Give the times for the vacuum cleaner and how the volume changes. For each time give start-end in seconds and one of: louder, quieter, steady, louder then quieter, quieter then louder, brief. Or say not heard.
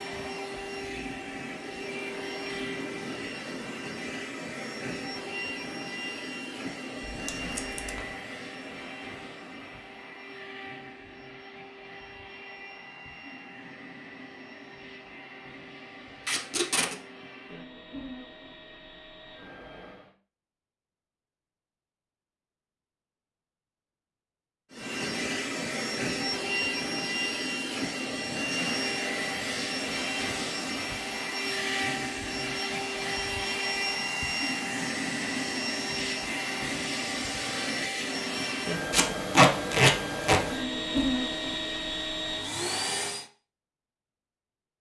0.0-20.1 quieter
24.7-43.3 steady.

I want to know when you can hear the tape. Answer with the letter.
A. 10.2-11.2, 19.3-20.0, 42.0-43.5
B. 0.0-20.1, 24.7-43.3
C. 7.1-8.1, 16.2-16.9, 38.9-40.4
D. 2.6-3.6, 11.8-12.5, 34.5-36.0
C.